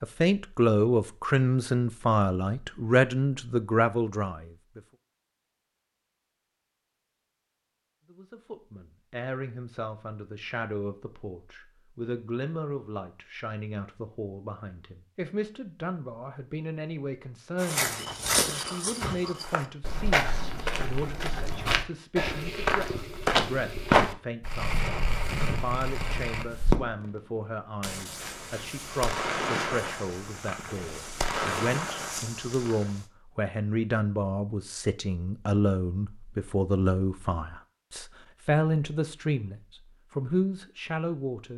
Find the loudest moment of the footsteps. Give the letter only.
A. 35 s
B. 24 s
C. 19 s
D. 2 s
B.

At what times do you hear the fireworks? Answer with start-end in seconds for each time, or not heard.
24.4-33.0.